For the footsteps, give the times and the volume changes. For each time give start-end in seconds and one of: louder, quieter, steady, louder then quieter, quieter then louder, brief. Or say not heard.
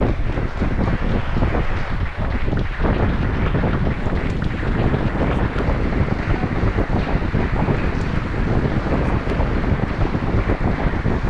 not heard.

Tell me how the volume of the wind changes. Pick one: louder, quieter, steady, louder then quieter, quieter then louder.
steady.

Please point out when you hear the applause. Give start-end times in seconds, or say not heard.
0.0-11.2.